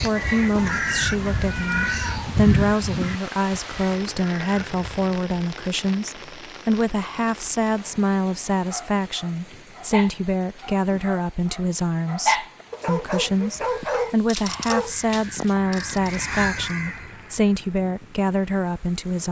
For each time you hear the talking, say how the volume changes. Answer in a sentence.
The talking can be heard from 0.0 to 19.2 s, at a steady volume.